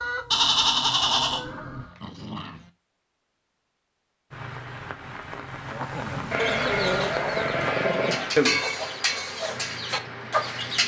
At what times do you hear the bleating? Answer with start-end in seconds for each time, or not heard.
0.3-1.9, 6.3-8.3.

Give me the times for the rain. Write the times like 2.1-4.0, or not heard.
4.3-10.8.